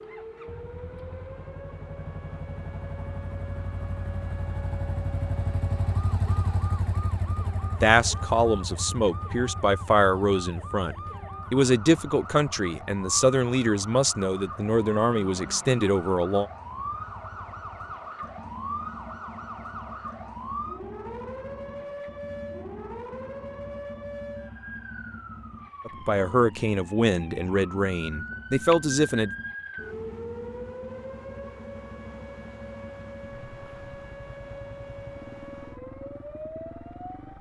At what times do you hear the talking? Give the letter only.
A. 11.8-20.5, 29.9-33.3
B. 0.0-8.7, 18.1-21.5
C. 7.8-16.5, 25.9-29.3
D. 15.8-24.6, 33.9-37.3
C.